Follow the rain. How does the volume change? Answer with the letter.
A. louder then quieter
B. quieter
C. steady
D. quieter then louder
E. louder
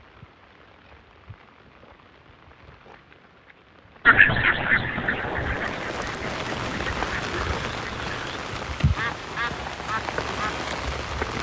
E.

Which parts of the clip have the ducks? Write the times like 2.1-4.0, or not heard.
4.0-10.7.